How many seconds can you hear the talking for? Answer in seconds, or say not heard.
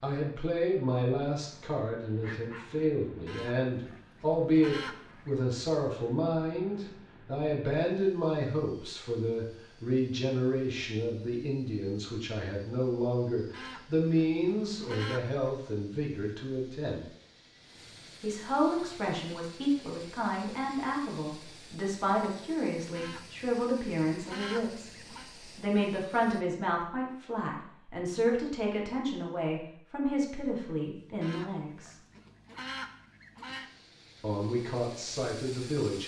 33 s.